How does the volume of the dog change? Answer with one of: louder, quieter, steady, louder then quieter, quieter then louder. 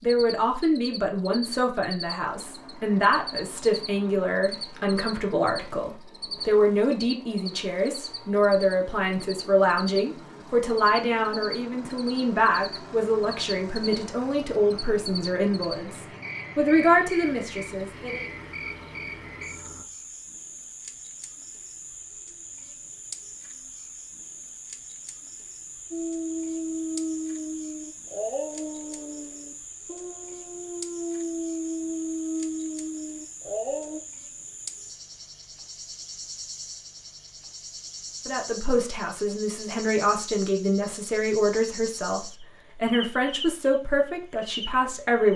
quieter then louder.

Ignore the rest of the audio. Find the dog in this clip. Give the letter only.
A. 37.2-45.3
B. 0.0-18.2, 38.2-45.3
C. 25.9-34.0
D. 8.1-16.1
C.